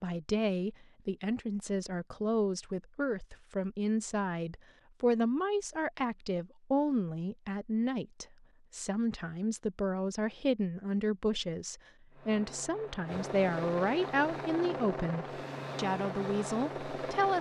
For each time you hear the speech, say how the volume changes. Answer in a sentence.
You can hear the speech from 0.0 to 17.3 s, at a steady volume.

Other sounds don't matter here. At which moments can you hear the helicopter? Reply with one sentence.
The helicopter can be heard from 12.1 to 17.3 s.